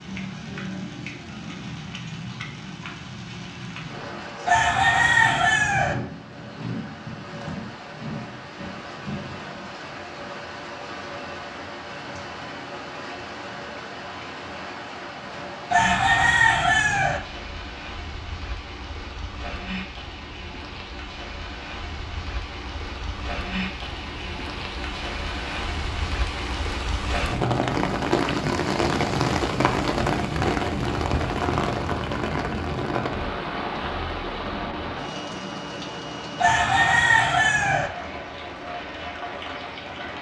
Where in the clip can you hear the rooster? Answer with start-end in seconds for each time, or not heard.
4.5-6.0, 15.7-17.2, 36.4-37.9.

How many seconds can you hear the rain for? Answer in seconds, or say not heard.
40 s.